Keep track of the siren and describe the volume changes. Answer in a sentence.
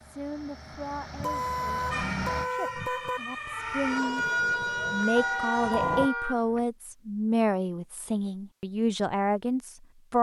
The volume of the siren goes up.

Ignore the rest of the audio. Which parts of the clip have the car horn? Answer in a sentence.
You can hear the car horn from 1.1 to 3.2 s and from 5.2 to 6.7 s.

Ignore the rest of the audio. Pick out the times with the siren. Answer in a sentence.
You can hear the siren from 1.9 to 6.1 s.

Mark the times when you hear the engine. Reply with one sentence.
You can hear the engine from 0.0 to 2.5 s.